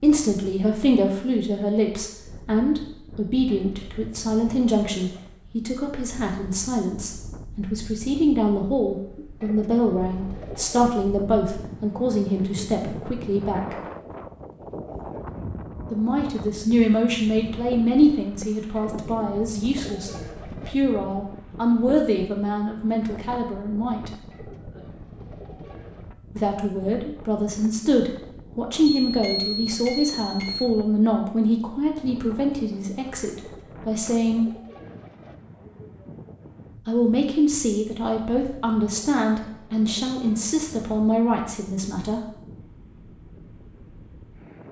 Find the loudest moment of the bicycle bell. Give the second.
29 s.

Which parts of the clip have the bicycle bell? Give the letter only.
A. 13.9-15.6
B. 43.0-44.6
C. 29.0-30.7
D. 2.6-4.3
C.